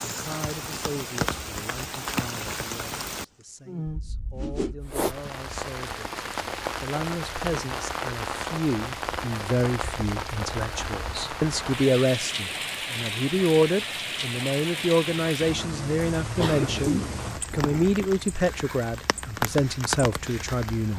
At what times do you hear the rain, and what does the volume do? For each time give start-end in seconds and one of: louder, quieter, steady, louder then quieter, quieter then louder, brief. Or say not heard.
0.0-20.9 steady.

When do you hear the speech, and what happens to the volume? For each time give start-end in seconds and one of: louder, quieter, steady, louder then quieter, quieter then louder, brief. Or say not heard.
0.1-20.9 louder.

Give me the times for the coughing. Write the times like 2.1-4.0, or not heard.
16.4-17.9.